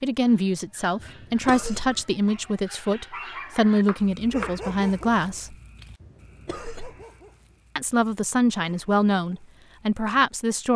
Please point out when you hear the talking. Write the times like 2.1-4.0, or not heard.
0.0-5.5, 7.8-10.7.